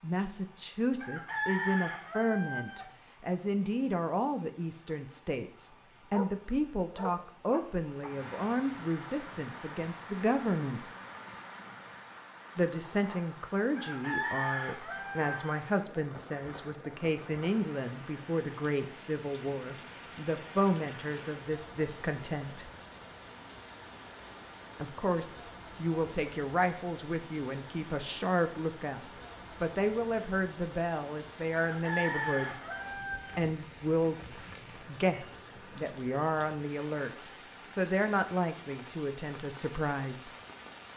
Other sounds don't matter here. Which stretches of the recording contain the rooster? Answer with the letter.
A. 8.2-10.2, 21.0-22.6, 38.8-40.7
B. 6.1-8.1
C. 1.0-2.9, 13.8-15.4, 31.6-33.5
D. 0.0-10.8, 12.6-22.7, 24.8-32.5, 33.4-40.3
C.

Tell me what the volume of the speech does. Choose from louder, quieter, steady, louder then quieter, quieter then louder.
steady.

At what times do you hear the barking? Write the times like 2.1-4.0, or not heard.
6.1-8.1.